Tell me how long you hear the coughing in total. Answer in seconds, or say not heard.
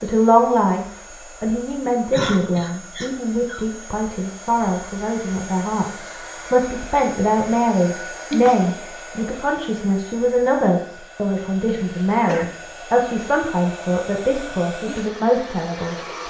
3 s.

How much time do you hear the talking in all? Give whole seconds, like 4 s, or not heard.
16 s.